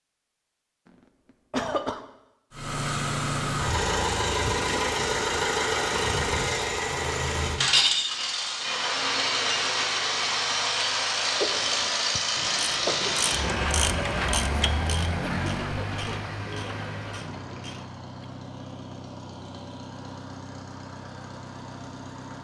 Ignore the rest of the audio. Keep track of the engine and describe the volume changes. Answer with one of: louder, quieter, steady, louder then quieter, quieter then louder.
quieter.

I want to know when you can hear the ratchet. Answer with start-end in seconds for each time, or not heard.
11.4-18.2.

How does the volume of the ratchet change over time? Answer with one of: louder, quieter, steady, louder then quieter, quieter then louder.
louder then quieter.